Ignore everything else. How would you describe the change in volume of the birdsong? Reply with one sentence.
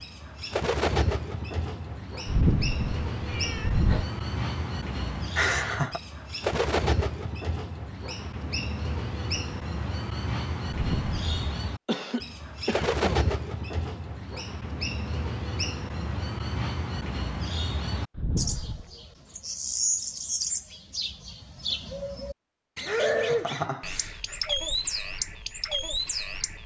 The loudness of the birdsong stays about the same.